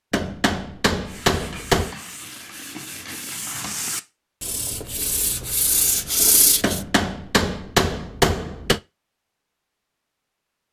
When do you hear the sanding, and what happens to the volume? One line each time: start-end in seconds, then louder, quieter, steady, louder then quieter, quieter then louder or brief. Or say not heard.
0.9-6.8 louder.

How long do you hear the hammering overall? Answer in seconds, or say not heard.
4 s.